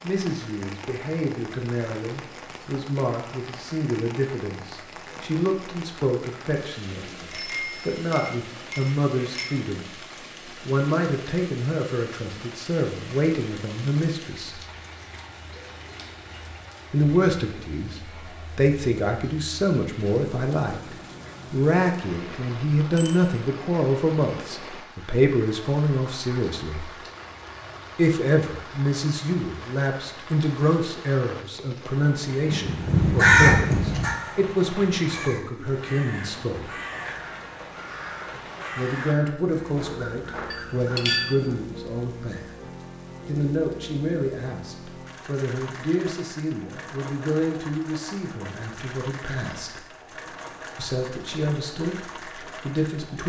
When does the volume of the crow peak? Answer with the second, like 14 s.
33 s.